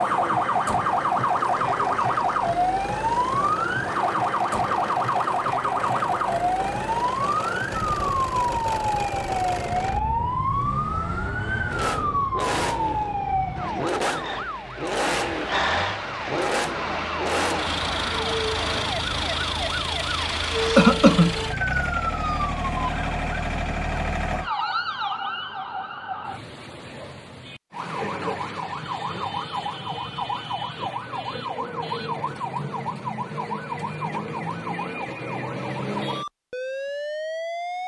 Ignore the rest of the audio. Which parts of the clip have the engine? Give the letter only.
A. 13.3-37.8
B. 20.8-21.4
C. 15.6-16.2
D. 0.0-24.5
D.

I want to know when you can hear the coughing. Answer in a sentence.
The coughing can be heard from 20.8 to 21.4 s.